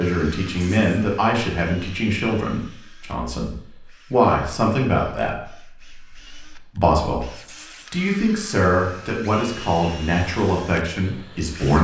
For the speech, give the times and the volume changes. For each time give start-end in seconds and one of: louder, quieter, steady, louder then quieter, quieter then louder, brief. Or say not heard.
0.0-11.7 steady.